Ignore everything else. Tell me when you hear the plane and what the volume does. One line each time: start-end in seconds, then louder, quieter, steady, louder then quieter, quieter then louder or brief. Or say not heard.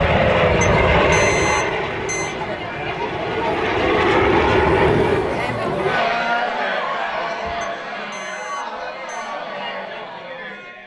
0.0-5.5 quieter then louder.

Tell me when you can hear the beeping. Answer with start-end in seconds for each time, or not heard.
0.6-2.4, 7.6-9.3.